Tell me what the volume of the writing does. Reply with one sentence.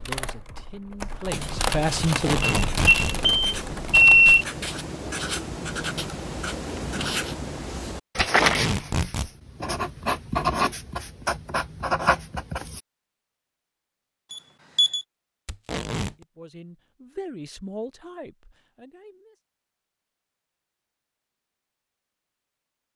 The loudness of the writing goes up.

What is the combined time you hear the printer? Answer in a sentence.
The printer can't be heard in this clip.